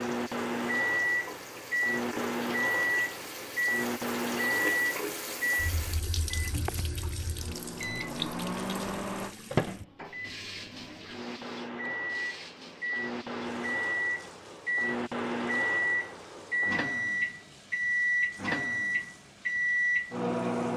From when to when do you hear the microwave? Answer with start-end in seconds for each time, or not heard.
0.0-20.7.